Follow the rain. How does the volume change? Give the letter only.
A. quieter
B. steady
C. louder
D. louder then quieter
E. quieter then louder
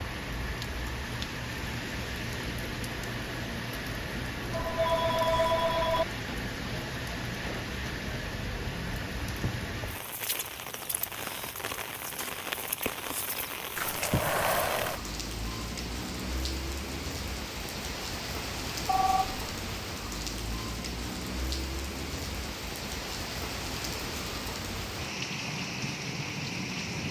B.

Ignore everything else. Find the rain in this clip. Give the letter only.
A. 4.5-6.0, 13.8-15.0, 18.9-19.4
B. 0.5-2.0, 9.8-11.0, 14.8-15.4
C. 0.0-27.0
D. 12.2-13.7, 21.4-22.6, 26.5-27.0
C.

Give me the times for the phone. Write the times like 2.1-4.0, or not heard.
4.5-6.0, 13.8-15.0, 18.9-19.4.